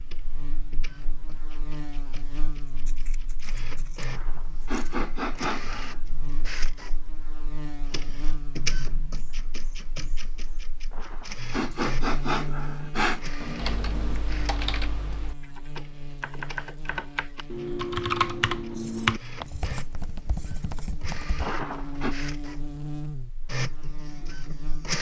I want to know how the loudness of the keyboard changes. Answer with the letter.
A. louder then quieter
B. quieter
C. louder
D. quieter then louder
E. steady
A.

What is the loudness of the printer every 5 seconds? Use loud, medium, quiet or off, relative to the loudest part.
medium, loud, loud, medium, loud.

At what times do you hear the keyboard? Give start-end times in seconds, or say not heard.
13.6-21.4.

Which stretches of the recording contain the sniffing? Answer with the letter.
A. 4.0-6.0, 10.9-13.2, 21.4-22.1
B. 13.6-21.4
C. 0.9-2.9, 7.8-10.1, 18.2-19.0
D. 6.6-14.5
A.